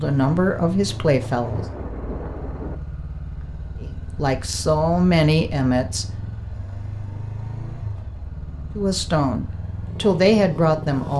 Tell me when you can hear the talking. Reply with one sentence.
The talking can be heard from 0.0 to 1.6 s, from 3.8 to 6.0 s and from 8.8 to 11.1 s.